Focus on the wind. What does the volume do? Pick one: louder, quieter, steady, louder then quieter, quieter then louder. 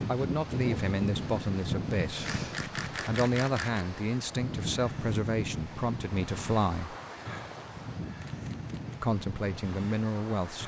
quieter.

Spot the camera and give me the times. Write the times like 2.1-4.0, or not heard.
2.2-3.9, 8.2-9.0.